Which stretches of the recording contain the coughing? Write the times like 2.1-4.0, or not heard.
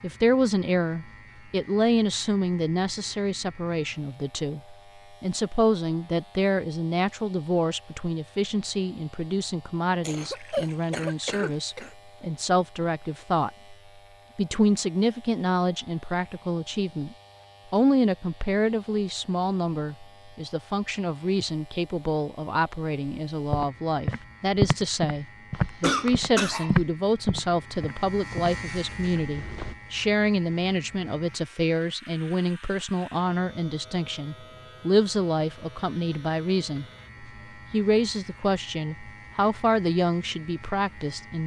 10.0-11.9, 25.5-26.8.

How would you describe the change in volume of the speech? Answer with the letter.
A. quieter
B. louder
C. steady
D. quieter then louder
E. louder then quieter
C.